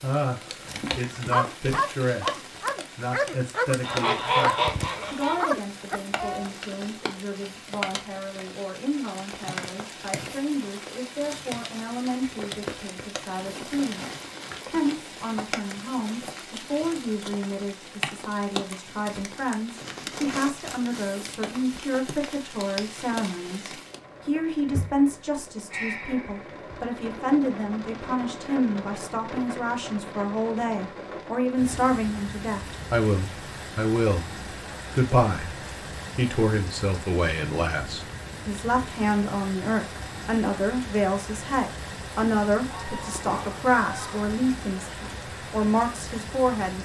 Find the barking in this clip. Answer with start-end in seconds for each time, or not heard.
0.9-6.5.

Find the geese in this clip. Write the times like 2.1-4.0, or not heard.
3.8-5.5, 42.7-44.2.